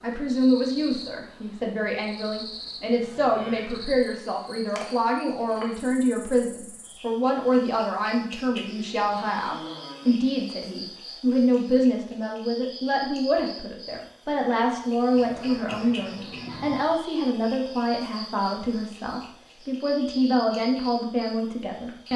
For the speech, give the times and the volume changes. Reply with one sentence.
You can hear the speech from 0.0 to 22.1 s, at a steady volume.